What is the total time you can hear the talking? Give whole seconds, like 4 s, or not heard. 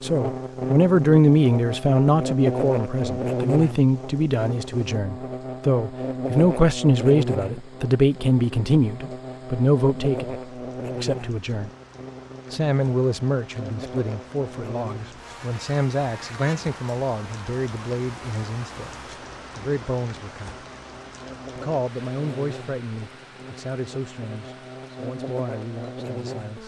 24 s.